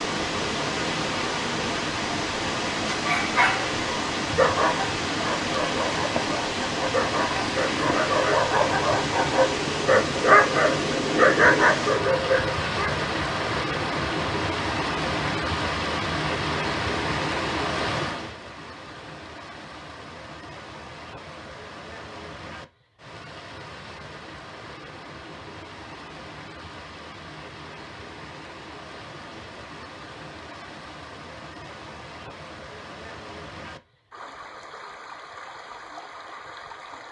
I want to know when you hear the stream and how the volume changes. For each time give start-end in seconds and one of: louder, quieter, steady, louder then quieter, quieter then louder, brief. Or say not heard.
0.0-37.0 quieter.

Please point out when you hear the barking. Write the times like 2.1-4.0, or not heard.
3.0-12.9.